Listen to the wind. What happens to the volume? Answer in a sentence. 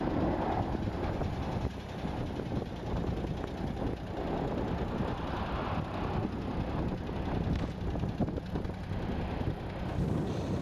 The volume of the wind stays about the same.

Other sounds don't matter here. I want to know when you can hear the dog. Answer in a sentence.
You can't hear the dog here.